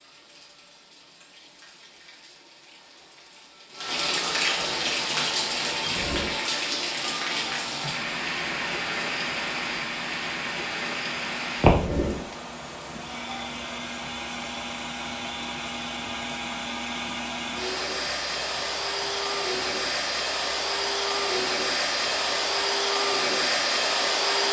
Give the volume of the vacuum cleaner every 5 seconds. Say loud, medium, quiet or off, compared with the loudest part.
off, quiet, medium, medium, loud.